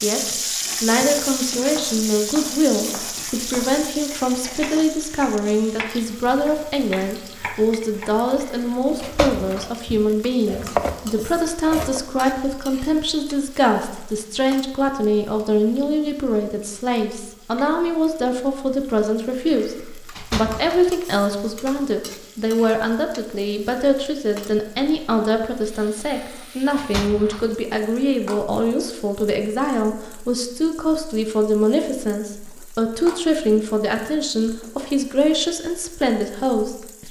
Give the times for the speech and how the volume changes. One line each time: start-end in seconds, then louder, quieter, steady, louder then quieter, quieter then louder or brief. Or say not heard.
0.0-37.0 steady.